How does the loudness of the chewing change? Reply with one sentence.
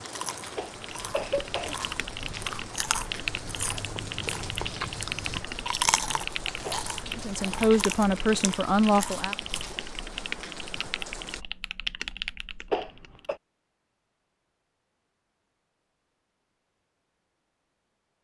The volume of the chewing goes up, then down.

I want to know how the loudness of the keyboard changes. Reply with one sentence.
The loudness of the keyboard stays about the same.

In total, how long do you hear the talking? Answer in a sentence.
The talking can be heard for 2 seconds in total.